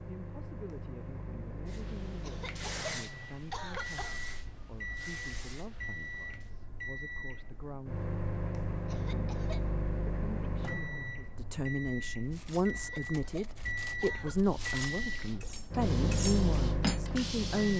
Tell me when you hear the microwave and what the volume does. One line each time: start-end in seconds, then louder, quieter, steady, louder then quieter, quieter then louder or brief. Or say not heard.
0.0-17.7 louder.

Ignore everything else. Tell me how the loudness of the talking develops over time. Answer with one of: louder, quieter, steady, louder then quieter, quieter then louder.
louder.